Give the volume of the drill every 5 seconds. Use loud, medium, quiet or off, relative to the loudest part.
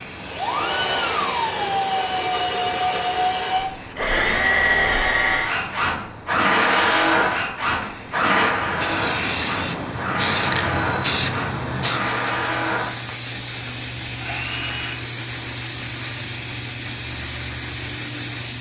loud, loud, medium, off.